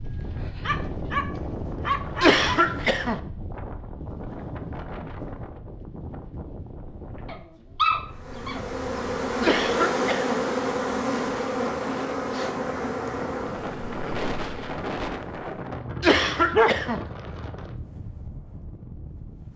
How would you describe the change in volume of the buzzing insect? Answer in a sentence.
The loudness of the buzzing insect goes down.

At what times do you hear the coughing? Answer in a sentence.
The coughing can be heard from 2.2 to 3.2 s, from 9.4 to 10.4 s and from 16.0 to 17.0 s.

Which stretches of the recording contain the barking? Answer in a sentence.
You can hear the barking from 0.1 to 2.5 s, from 7.2 to 8.7 s and from 15.6 to 16.8 s.